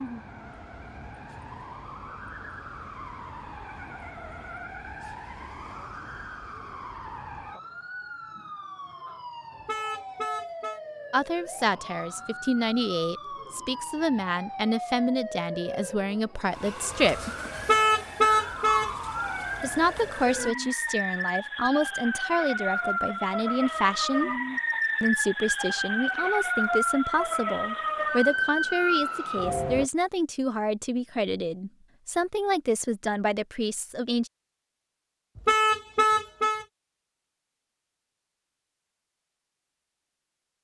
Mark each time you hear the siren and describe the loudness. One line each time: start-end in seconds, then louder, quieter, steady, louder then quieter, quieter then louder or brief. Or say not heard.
0.0-29.9 louder.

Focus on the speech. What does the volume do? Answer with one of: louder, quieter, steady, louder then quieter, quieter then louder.
steady.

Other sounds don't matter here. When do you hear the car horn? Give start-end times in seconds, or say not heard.
9.6-10.8, 17.6-18.9, 35.4-36.6.